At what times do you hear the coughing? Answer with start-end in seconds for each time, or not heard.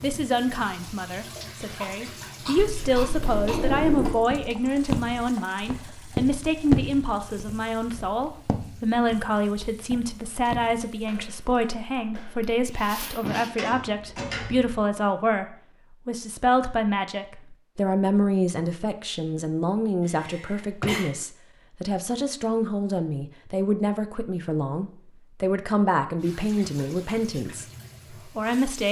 1.8-3.6, 12.4-13.5, 20.0-21.1.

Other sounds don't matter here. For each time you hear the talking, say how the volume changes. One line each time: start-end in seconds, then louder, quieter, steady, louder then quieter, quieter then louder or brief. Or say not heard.
0.0-28.8 steady.